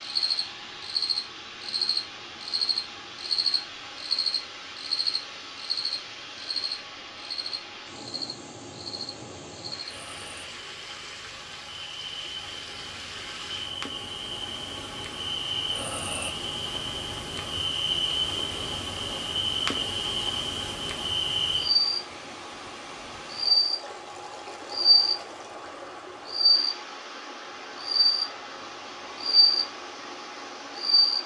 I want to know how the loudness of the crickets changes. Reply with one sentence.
The volume of the crickets goes down, then up.